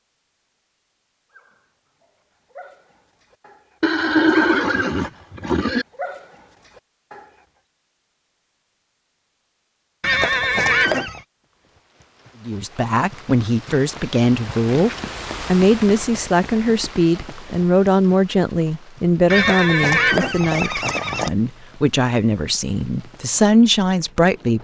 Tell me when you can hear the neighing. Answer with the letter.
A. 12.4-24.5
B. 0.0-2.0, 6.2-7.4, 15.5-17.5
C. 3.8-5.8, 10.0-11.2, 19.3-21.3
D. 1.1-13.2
C.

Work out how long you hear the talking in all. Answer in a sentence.
The talking can be heard for 12 seconds in total.